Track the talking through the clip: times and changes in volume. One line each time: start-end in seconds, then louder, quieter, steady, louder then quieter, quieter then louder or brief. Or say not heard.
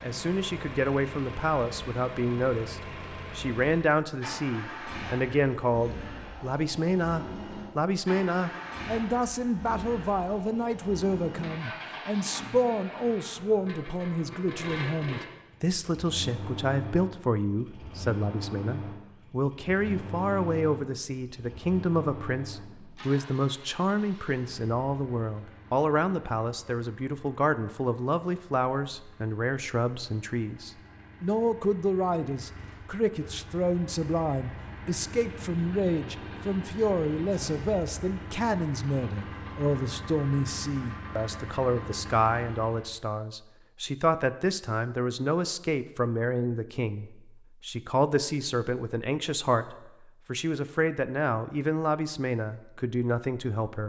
0.0-53.8 steady.